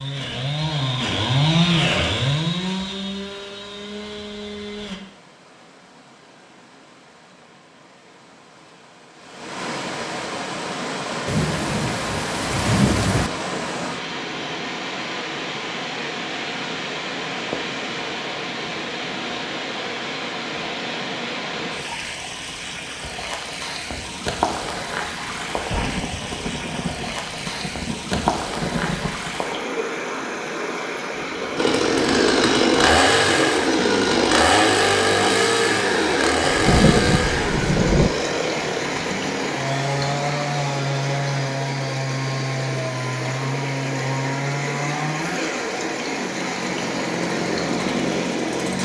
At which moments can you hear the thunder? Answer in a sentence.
The thunder can be heard from 11.2 to 13.3 s, from 25.5 to 29.3 s and from 36.5 to 38.1 s.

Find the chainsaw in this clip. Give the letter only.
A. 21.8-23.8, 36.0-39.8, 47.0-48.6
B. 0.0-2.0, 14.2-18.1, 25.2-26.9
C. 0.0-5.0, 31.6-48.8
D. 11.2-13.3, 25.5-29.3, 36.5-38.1
C.